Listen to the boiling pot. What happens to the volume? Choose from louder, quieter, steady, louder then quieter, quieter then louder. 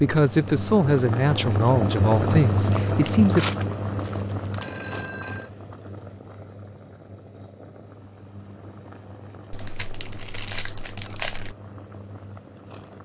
quieter.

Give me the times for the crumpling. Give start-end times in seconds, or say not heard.
2.9-4.7, 9.5-11.6.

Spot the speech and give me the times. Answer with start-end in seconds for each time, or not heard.
0.0-3.5.